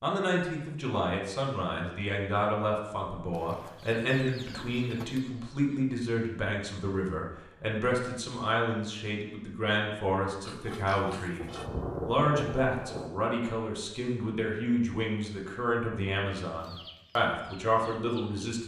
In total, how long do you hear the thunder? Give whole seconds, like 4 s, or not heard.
2 s.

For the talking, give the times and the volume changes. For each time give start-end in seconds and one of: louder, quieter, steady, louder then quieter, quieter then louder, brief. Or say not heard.
0.0-18.6 steady.